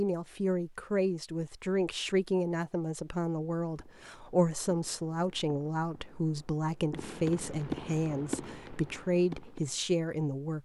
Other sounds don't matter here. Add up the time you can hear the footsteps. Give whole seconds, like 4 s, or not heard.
not heard.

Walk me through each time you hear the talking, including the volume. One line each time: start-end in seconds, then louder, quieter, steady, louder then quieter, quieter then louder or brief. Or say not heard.
0.0-10.6 steady.